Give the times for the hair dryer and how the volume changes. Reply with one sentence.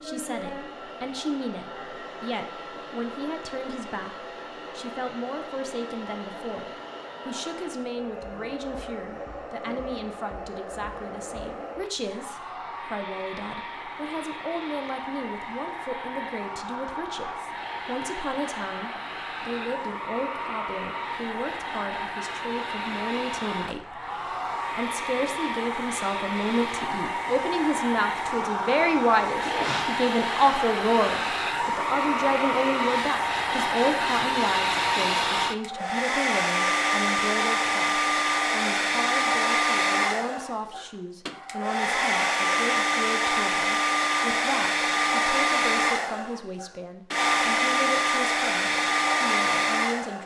You can hear the hair dryer from 0.0 to 50.2 s, getting louder.